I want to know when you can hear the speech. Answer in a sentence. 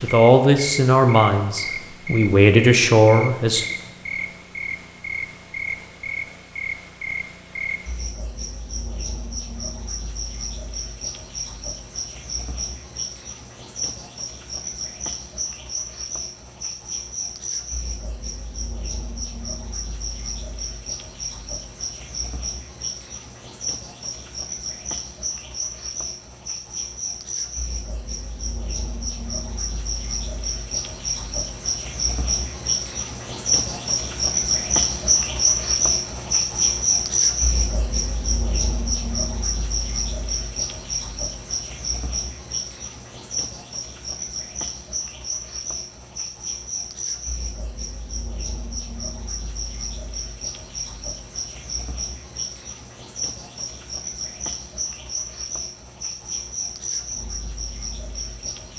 The speech can be heard from 0.0 to 3.6 s.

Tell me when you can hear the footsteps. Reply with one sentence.
The footsteps can't be heard in this clip.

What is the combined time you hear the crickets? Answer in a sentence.
You can hear the crickets for 59 seconds altogether.